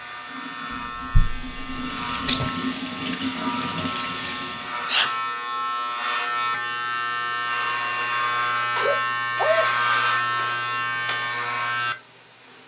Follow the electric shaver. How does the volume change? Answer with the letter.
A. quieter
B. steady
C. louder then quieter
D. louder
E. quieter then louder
D.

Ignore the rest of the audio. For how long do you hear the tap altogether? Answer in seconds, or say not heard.
5 s.